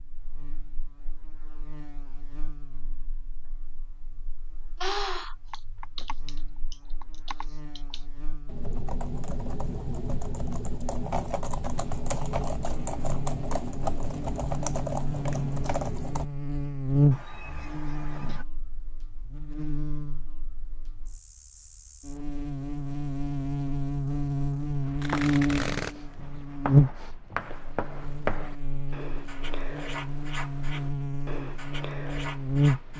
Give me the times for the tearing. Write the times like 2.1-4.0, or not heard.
25.0-25.9.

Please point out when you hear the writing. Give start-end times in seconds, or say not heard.
24.9-32.9.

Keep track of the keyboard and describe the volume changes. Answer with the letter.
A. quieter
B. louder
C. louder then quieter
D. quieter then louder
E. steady
B.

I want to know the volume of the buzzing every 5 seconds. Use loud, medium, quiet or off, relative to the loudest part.
quiet, quiet, quiet, loud, medium, loud, loud.